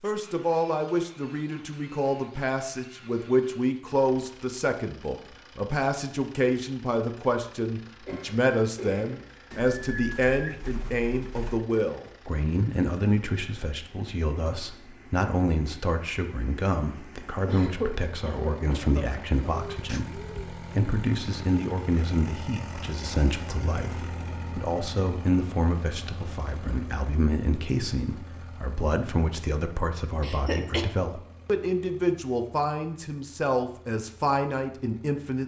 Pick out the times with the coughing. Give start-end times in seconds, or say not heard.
8.1-9.2, 17.4-19.4, 30.2-30.9.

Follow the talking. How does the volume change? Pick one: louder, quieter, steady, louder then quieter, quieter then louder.
steady.